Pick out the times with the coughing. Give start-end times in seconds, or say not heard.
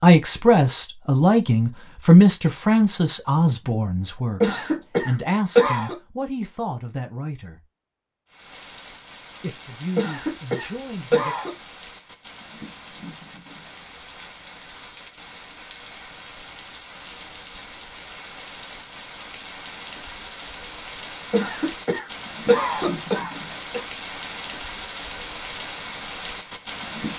4.4-6.0, 9.9-11.6, 21.3-23.8.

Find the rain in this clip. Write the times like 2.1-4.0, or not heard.
8.2-27.1.